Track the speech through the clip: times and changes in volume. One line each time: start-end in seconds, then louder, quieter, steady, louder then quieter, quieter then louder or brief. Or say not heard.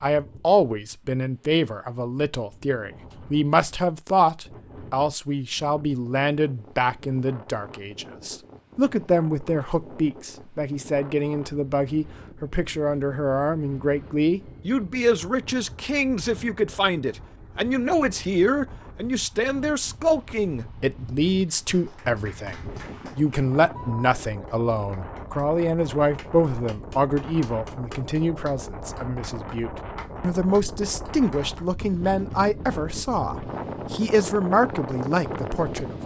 0.0-36.0 steady.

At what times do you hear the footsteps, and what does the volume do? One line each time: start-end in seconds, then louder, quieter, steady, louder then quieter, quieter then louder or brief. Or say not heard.
not heard.